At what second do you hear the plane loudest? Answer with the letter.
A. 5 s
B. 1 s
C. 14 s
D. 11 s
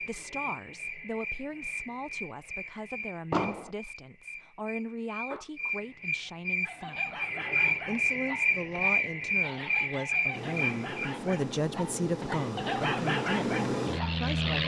C.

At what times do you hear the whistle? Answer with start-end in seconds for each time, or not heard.
not heard.